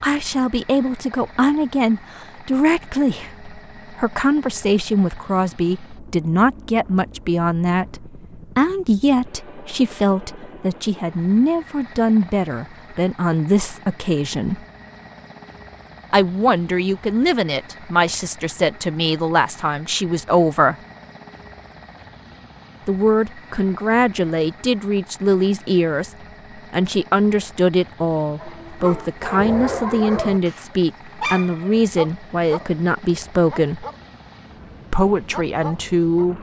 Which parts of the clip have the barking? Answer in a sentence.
The barking can be heard from 28.4 to 36.2 s.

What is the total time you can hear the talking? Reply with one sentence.
You can hear the talking for 32 seconds altogether.